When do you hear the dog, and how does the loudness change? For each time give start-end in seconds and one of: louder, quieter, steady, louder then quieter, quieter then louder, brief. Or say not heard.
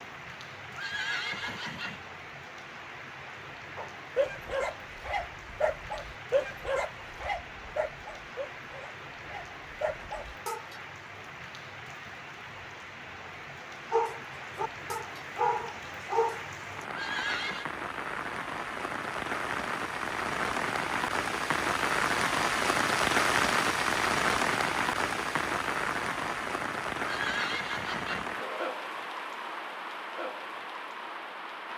3.8-10.8 quieter then louder
13.9-16.4 brief.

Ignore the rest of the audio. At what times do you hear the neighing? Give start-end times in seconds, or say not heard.
0.7-2.0, 16.9-17.6, 26.9-28.4.